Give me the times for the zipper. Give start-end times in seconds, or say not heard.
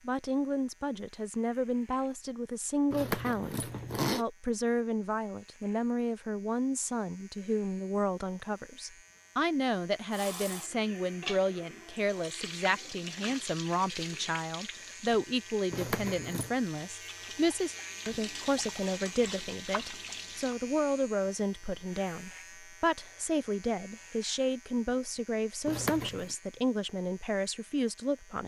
2.9-4.2, 15.7-16.6, 25.6-26.4.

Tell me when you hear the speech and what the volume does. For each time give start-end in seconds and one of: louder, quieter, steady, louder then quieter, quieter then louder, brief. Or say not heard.
0.1-28.4 steady.